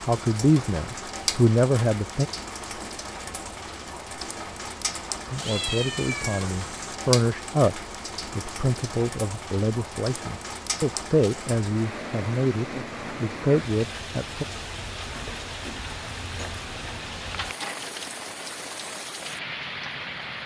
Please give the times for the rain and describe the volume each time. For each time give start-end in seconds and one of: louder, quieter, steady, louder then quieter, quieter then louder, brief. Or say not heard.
0.0-20.4 steady.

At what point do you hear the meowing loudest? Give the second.
6 s.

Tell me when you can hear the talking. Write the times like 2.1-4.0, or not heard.
0.0-2.2, 5.3-14.4.